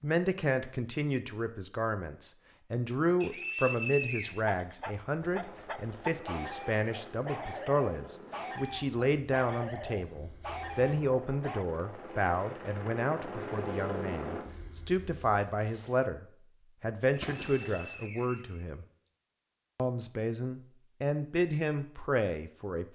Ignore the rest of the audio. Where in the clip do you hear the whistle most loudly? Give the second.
4 s.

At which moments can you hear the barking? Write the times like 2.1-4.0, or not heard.
4.2-11.7.